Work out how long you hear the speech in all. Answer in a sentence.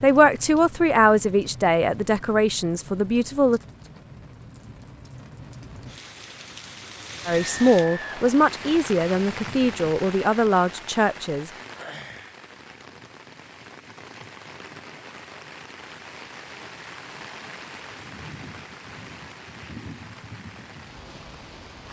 The speech can be heard for 8 seconds in total.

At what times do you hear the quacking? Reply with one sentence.
The quacking can't be heard in this clip.